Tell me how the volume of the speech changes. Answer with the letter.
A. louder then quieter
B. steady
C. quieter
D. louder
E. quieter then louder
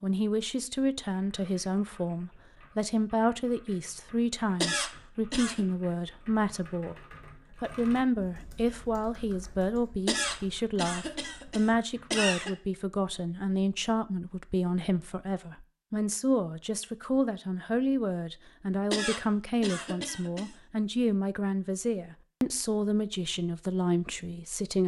B.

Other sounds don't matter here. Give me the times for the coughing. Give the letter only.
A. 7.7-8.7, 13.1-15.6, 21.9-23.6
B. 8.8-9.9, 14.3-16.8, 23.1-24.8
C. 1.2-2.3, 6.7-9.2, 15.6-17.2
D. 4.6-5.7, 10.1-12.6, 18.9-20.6
D.